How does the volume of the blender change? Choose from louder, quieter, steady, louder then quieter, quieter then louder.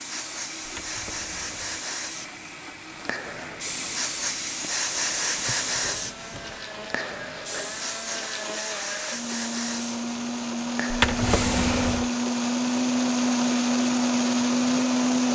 louder.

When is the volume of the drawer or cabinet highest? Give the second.
11 s.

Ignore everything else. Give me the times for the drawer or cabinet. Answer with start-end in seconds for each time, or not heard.
0.7-1.9, 5.3-6.6, 10.9-12.1.